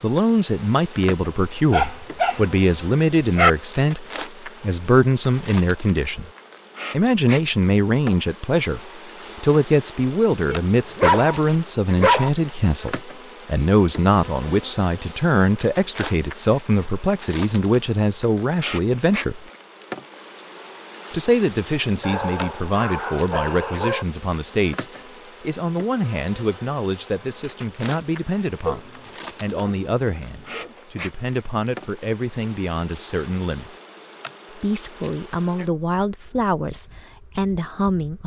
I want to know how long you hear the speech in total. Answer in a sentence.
The speech can be heard for 35 seconds in total.